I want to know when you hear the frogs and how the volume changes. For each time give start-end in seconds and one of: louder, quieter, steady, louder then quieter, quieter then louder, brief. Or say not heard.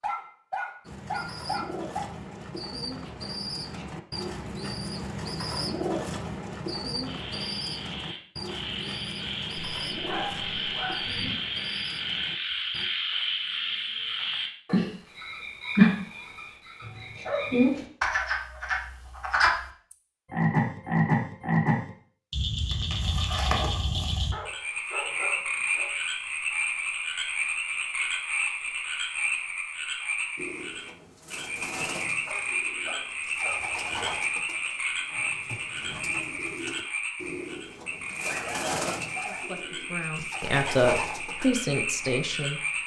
7.0-42.8 louder then quieter.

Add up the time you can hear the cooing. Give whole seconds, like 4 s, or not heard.
24 s.